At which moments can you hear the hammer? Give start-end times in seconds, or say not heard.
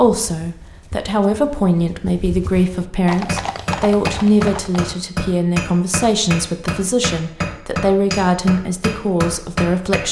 3.2-10.0.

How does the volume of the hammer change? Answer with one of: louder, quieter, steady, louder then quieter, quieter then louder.
steady.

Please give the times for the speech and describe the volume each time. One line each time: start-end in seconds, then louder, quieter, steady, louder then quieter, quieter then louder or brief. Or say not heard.
0.0-10.0 steady.